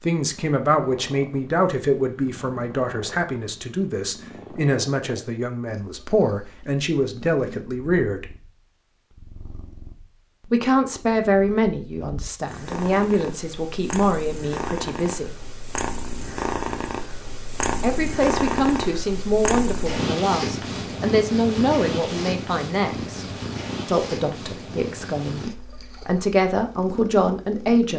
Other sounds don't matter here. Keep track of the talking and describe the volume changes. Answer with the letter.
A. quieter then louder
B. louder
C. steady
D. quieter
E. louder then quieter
C.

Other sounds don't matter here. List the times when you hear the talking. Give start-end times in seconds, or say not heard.
0.0-8.2, 10.4-15.3, 17.8-23.2, 23.9-27.9.